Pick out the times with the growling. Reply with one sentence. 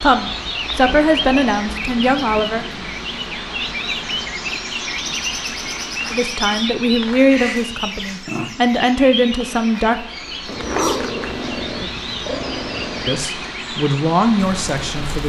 You can hear the growling from 0.8 to 2.9 s, from 7.2 to 8.5 s and from 10.4 to 13.2 s.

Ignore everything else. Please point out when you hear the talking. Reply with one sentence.
You can hear the talking from 0.0 to 2.6 s, from 6.1 to 10.1 s and from 13.1 to 15.2 s.